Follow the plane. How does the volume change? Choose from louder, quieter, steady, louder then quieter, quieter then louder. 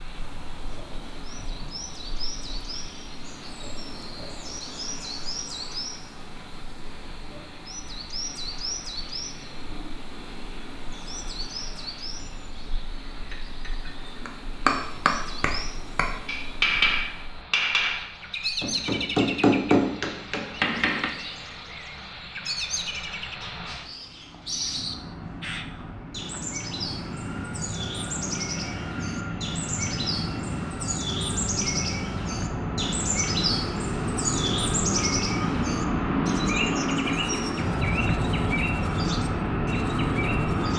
louder.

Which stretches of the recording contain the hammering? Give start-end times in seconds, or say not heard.
13.1-21.1.